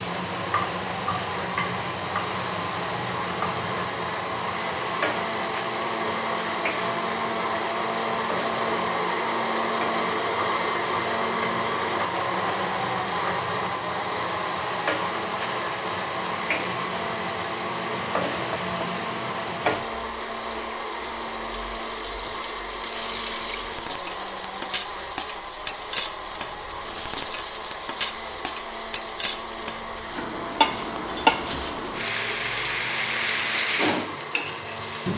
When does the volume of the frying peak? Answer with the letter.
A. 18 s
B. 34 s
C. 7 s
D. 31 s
D.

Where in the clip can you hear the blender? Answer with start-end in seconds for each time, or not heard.
0.0-35.1.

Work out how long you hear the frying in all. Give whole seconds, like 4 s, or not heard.
35 s.